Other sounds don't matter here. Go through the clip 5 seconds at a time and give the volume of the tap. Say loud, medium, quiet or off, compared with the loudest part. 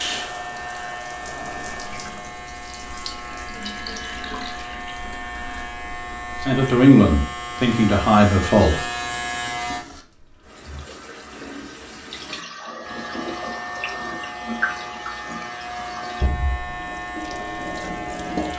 loud, medium, loud, loud.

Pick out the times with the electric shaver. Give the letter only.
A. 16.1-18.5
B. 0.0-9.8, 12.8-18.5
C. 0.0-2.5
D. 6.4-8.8
B.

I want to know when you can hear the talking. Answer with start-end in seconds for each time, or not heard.
6.4-8.8.